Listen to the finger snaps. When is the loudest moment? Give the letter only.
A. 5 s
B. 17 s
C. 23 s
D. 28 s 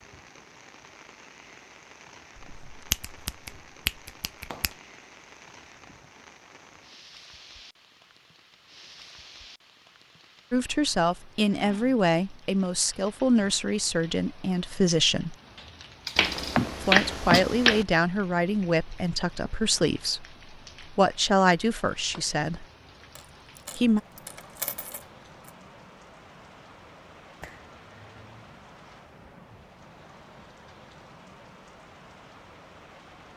B.